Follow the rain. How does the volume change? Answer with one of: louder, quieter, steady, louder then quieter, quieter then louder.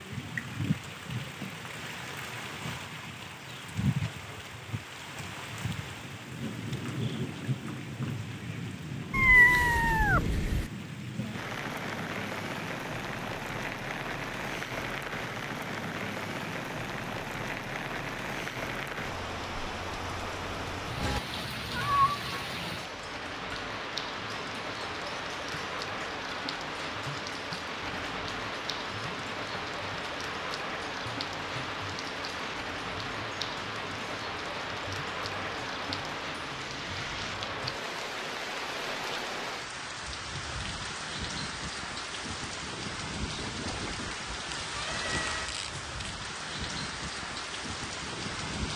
steady.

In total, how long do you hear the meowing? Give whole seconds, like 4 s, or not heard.
4 s.